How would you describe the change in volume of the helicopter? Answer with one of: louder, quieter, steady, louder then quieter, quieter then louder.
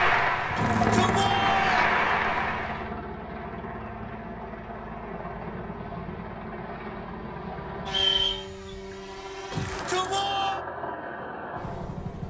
quieter.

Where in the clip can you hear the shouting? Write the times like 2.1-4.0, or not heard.
0.6-1.9, 9.5-10.6.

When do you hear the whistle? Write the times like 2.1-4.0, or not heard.
7.8-8.4.